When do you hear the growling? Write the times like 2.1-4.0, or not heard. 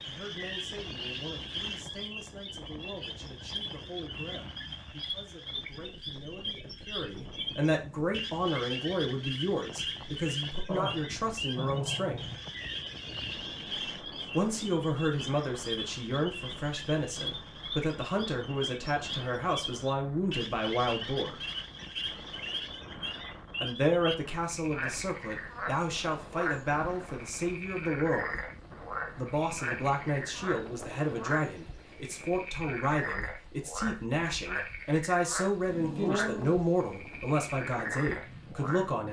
10.7-12.4, 35.2-36.6.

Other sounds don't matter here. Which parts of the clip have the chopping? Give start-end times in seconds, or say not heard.
not heard.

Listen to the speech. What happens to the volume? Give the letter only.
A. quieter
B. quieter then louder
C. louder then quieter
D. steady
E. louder
E.